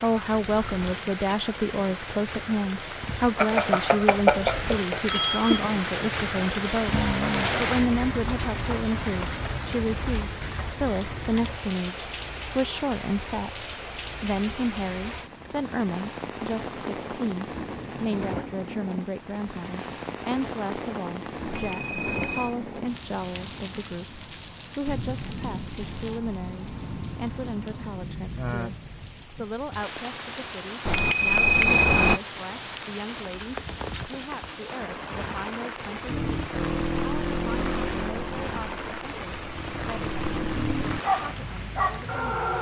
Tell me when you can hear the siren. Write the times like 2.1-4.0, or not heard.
not heard.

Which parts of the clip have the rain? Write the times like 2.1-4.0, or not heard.
0.0-42.5.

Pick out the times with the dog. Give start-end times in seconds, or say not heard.
41.0-42.5.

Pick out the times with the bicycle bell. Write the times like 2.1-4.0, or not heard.
3.4-5.6, 21.4-22.6, 30.9-32.2.